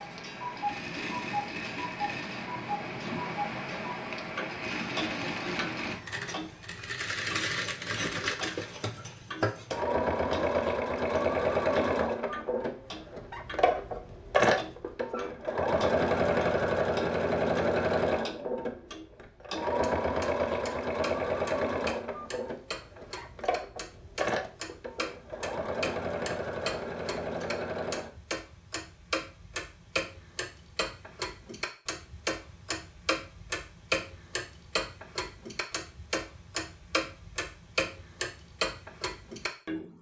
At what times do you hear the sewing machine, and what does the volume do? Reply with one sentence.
The sewing machine can be heard from 0.0 to 28.1 s, getting louder then quieter.